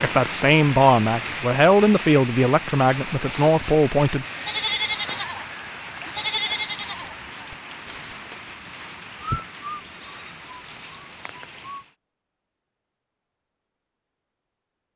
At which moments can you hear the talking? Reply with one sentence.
You can hear the talking from 0.0 to 4.2 s.